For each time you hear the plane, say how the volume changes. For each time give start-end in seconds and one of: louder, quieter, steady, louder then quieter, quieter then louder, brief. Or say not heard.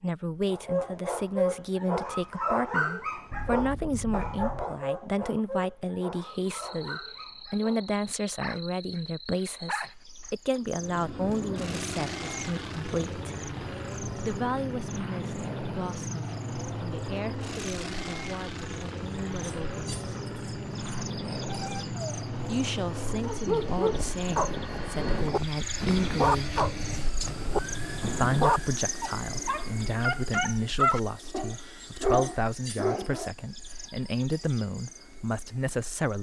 10.7-36.1 quieter.